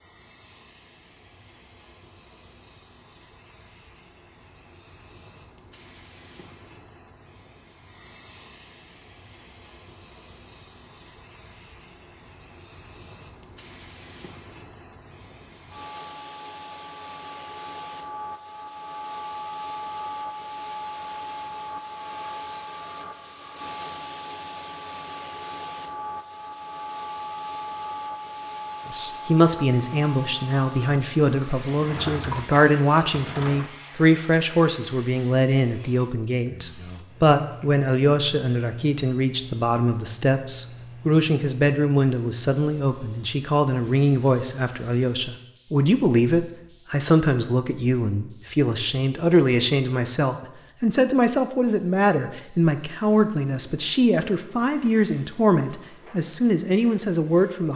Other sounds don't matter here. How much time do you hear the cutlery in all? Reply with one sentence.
You can't hear the cutlery here.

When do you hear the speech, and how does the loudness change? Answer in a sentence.
The speech can be heard from 28.9 to 57.7 s, at a steady volume.